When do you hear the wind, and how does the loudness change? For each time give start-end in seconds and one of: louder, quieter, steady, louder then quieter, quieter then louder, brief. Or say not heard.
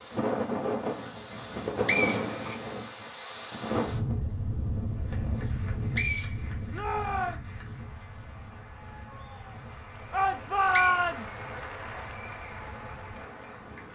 0.0-13.9 quieter.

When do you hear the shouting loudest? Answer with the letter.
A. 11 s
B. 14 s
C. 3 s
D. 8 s
A.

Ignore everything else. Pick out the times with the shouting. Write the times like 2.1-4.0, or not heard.
2.2-2.7, 6.7-7.4, 10.1-11.4.